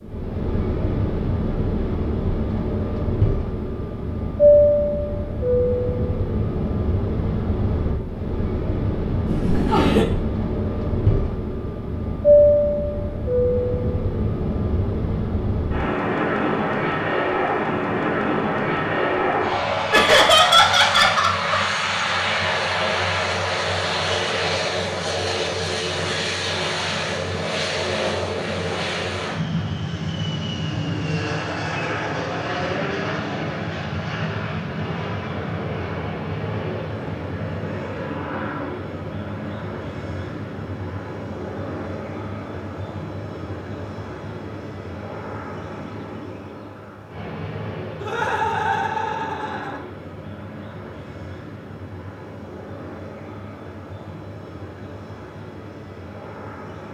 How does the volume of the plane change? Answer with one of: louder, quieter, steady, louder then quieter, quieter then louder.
quieter.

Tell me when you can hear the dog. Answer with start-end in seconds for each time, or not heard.
not heard.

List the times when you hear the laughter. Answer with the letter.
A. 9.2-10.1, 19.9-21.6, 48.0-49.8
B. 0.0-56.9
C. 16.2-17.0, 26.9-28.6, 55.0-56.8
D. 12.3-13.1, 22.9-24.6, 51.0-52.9
A.